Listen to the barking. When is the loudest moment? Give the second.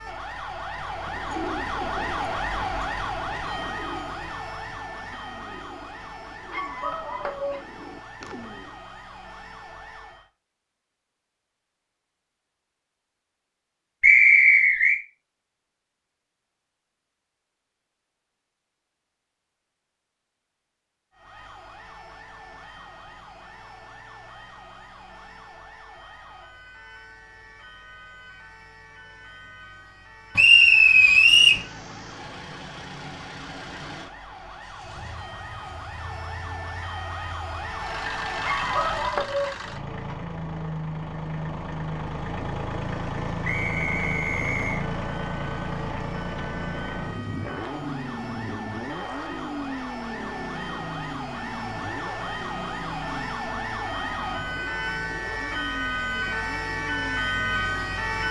39 s.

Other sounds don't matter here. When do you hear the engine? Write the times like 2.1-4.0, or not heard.
31.2-58.2.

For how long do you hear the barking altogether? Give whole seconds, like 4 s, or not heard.
2 s.